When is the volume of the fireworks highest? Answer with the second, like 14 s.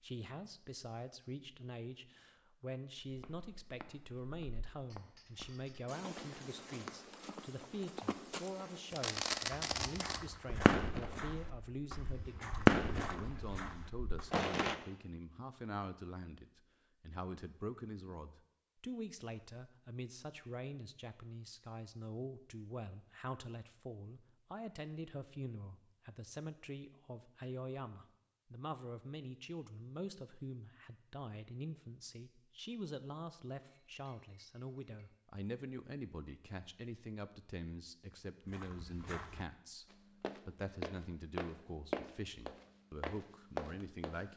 13 s.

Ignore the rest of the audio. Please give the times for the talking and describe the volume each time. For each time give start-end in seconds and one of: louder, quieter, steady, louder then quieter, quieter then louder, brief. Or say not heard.
0.0-44.3 steady.